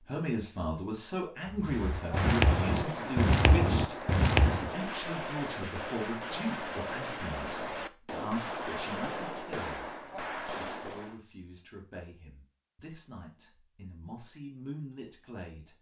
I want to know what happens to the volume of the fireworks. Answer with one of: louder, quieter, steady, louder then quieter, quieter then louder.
steady.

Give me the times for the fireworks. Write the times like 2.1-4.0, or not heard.
1.6-11.2.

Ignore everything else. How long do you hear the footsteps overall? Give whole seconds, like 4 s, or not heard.
3 s.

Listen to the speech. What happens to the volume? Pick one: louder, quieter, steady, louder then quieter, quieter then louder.
quieter.